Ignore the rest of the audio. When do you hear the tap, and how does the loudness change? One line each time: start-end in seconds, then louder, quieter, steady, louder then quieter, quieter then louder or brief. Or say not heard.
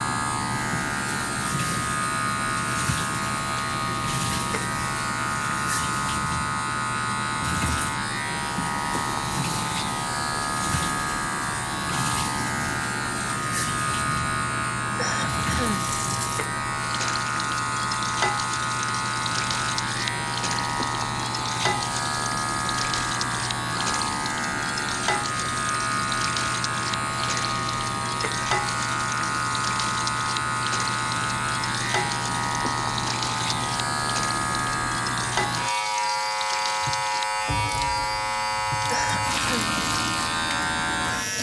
0.0-41.3 steady.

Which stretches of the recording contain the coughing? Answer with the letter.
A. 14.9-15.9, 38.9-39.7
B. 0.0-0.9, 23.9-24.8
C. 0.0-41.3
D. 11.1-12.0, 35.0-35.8
A.